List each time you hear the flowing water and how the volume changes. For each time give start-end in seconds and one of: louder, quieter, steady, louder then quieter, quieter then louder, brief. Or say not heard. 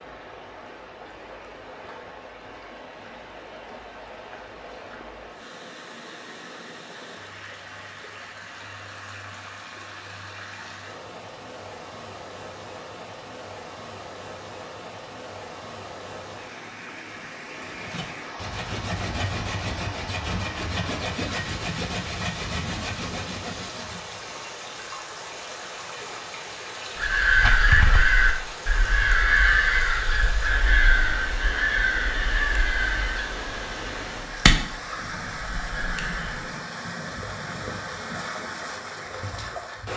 0.0-39.9 louder.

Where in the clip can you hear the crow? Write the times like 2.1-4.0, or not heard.
26.9-36.5.